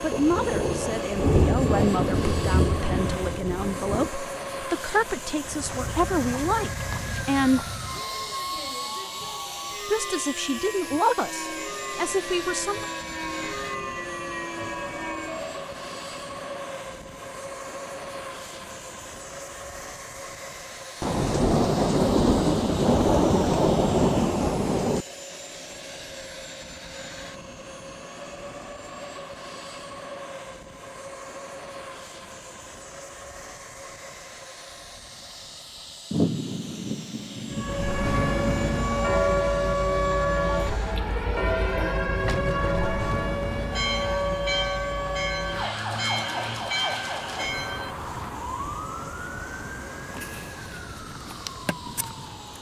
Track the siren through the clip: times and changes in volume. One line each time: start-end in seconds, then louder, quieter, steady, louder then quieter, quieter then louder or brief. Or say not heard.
5.3-15.5 steady
37.5-52.5 quieter.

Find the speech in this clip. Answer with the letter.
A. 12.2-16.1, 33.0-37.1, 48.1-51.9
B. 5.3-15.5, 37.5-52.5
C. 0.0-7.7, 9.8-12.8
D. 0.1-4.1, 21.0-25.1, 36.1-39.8
C.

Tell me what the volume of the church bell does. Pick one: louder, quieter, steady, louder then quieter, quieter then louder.
steady.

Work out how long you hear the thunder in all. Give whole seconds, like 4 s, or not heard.
12 s.